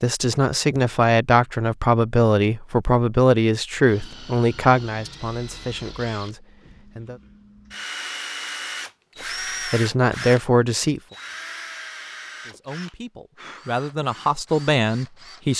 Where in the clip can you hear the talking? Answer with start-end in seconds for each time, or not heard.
0.0-7.2, 9.7-11.0, 12.4-15.5.